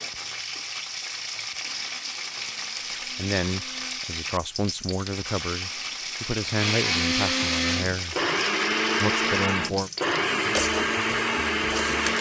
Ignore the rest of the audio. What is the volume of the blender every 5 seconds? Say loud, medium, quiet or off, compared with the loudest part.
quiet, loud, loud.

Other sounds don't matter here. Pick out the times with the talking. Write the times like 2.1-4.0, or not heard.
3.1-8.2, 8.9-9.9.